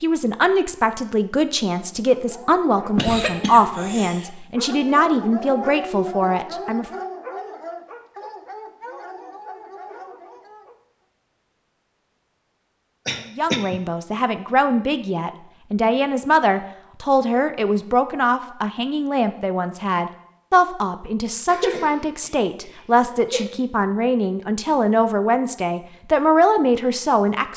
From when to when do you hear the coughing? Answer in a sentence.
The coughing can be heard from 3.0 to 4.3 s, from 13.1 to 13.8 s and from 21.4 to 23.4 s.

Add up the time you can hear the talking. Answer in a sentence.
You can hear the talking for 21 seconds altogether.